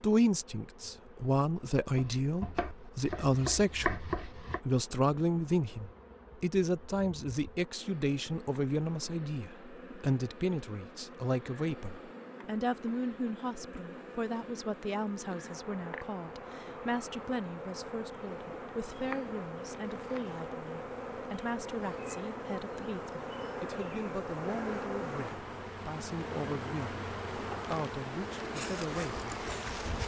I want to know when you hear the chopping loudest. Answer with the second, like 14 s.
4 s.